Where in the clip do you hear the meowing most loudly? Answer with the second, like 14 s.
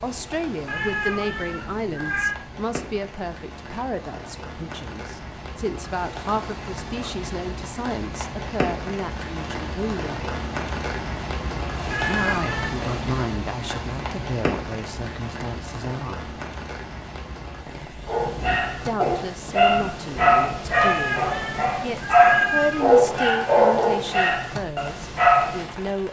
22 s.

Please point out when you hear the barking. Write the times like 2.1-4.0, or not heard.
18.1-25.6.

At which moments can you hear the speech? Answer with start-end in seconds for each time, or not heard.
0.0-10.2, 12.1-16.3, 18.9-26.0.